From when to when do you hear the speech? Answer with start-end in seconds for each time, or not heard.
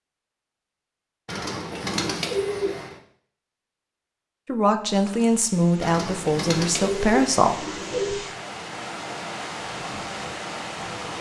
4.5-7.5.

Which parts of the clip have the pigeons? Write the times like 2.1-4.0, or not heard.
1.2-3.0, 5.8-8.2.